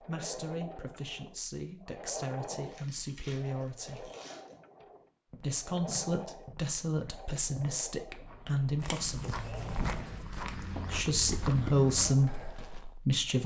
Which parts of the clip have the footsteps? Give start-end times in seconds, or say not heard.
4.8-13.0.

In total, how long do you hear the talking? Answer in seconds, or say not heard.
11 s.